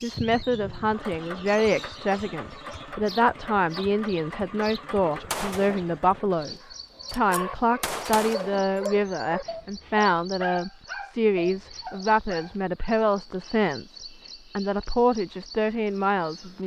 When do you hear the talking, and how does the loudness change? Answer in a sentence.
The talking can be heard from 0.0 to 16.6 s, at a steady volume.